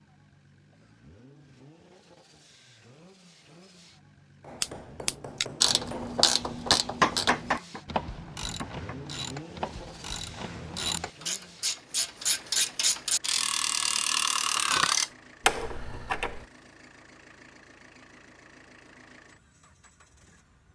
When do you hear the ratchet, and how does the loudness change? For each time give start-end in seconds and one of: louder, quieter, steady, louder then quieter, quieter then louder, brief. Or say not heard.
4.6-16.4 quieter then louder.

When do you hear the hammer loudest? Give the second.
7 s.